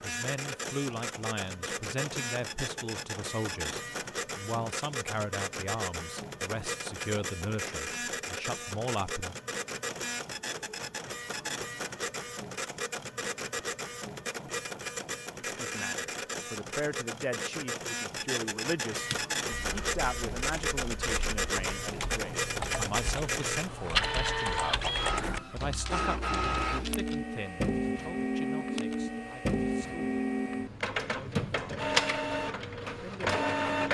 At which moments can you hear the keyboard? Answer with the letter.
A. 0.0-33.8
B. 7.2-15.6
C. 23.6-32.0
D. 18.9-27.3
D.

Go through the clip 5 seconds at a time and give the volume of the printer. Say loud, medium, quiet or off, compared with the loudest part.
medium, medium, medium, medium, loud, loud, loud.